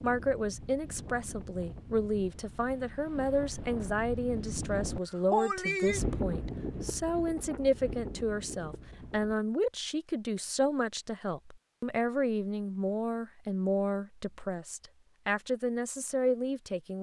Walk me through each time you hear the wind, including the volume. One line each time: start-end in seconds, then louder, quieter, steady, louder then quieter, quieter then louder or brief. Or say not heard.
0.0-9.3 louder then quieter.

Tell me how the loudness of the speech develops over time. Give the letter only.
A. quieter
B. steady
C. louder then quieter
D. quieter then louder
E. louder
B.